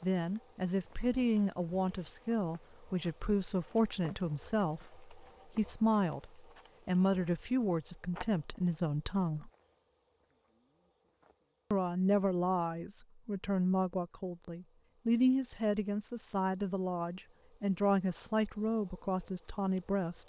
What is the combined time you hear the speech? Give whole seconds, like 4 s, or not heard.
18 s.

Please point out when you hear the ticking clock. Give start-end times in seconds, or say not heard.
not heard.